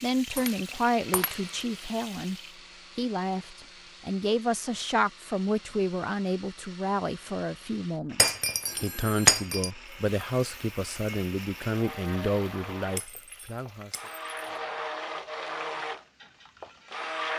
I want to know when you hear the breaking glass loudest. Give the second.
9 s.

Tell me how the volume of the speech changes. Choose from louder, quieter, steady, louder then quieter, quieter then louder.
steady.